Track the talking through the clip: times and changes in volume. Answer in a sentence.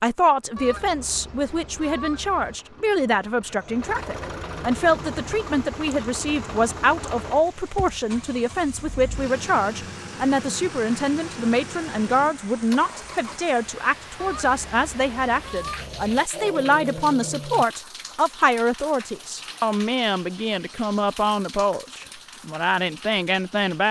You can hear the talking from 0.0 to 23.8 s, at a steady volume.